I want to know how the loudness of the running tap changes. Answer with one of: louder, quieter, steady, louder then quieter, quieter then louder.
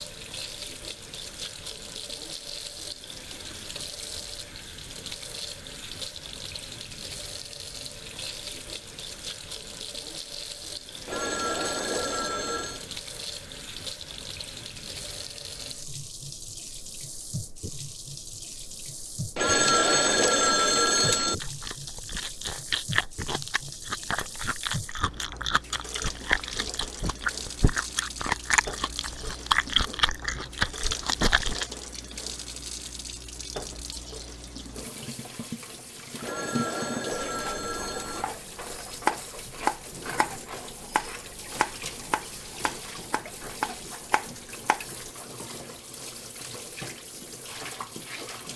steady.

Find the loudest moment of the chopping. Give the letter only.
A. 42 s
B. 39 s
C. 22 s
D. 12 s
B.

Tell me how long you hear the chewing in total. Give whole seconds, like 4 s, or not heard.
10 s.